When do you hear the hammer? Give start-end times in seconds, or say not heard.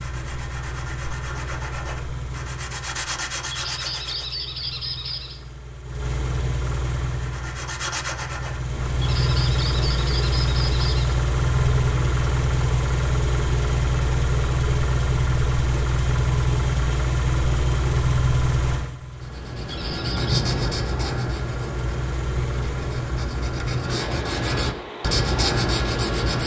not heard.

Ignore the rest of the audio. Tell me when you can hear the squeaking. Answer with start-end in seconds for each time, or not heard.
3.5-5.4, 9.0-11.2, 19.7-20.4.